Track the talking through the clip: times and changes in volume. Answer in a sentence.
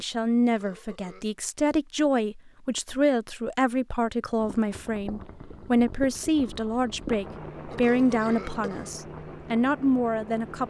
You can hear the talking from 0.0 to 10.6 s, at a steady volume.